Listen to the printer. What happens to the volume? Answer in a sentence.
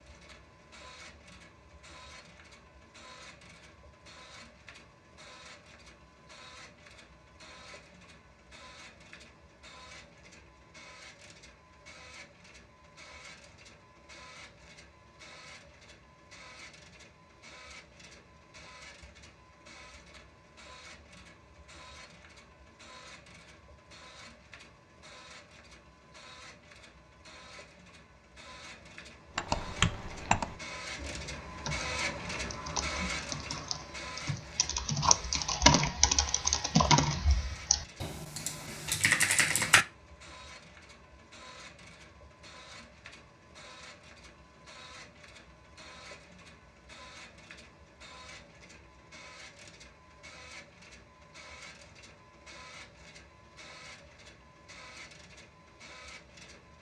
The loudness of the printer goes up, then down.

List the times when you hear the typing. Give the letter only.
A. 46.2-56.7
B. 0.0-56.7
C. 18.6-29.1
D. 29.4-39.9
D.